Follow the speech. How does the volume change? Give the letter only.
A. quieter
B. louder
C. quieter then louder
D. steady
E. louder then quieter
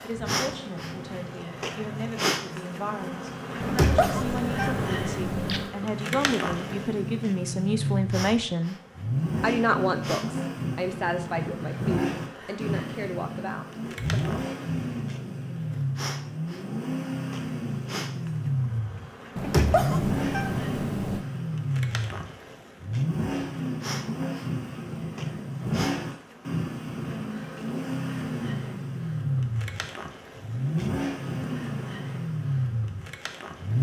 E.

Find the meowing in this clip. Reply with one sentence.
The meowing can be heard from 3.6 to 5.7 s and from 19.4 to 21.2 s.